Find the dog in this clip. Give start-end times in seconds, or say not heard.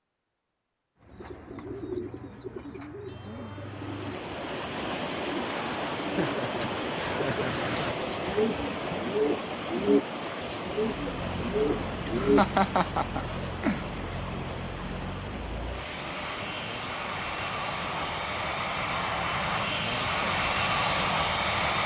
not heard.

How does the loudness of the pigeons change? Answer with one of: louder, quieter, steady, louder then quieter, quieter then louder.
louder.